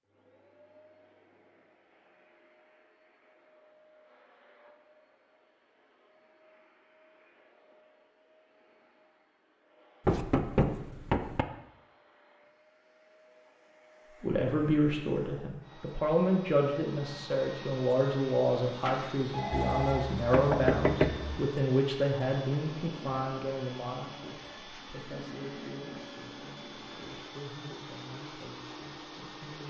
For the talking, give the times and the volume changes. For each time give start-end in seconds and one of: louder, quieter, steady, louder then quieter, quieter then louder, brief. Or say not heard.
14.2-29.6 quieter.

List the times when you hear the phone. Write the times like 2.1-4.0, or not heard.
18.6-20.0.